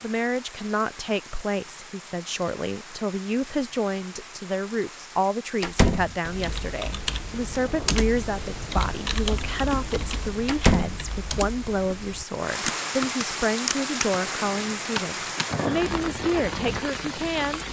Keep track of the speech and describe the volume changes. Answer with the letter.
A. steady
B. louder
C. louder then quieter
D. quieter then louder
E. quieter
A.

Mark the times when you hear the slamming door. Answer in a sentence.
You can hear the slamming door from 5.6 to 6.2 s and from 10.4 to 11.0 s.